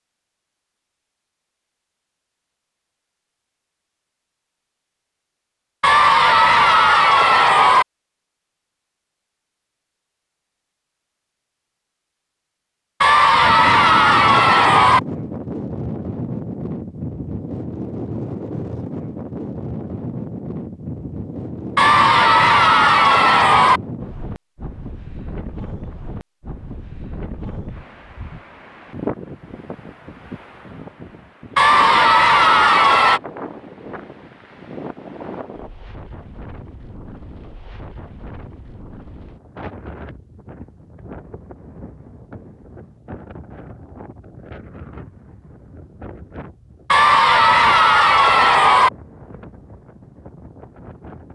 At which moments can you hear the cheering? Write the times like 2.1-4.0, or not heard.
5.8-7.8, 13.0-15.0, 21.8-23.8, 31.6-33.2, 46.9-48.9.